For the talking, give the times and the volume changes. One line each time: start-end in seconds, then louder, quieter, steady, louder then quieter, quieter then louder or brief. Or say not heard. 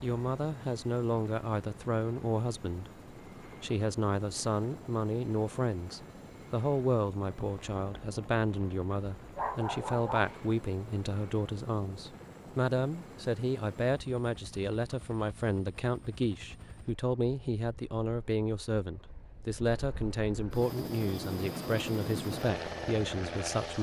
0.0-23.7 steady.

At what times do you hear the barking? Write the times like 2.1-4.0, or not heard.
8.9-10.5.